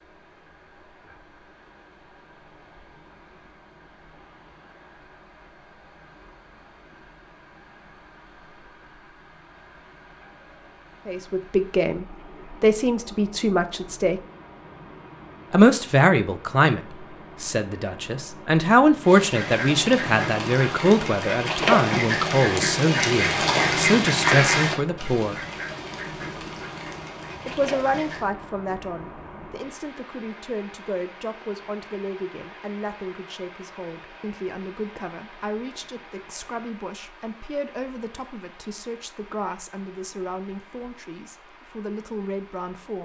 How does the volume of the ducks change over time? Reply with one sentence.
The volume of the ducks goes up, then down.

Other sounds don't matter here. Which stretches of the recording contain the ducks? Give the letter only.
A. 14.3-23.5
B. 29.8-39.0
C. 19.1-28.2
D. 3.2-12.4
C.